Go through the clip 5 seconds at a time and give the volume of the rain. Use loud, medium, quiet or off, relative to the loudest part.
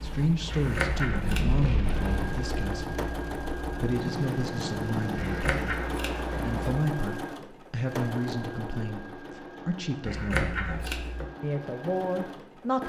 loud, loud, off.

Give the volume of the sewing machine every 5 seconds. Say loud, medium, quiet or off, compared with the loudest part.
loud, loud, medium.